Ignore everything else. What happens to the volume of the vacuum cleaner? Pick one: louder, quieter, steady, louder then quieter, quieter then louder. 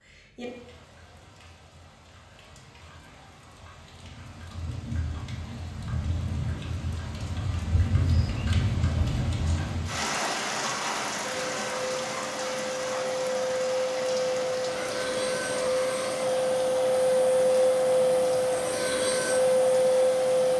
louder.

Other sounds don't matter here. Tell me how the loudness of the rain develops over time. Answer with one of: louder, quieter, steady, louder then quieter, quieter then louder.
louder then quieter.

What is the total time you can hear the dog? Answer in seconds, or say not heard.
not heard.